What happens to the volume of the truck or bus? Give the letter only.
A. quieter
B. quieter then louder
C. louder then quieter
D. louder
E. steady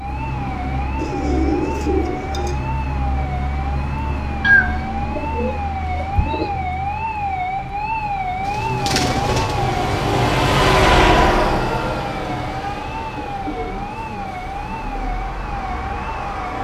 C.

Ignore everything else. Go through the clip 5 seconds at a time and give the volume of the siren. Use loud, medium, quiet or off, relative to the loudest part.
medium, loud, medium, medium.